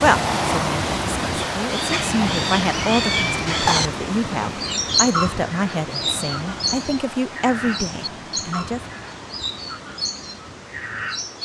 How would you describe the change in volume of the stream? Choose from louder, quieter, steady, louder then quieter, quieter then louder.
quieter.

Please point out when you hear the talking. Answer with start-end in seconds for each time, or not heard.
0.0-8.8.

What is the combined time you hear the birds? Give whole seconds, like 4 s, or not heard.
11 s.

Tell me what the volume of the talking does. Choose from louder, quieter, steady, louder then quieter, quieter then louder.
louder.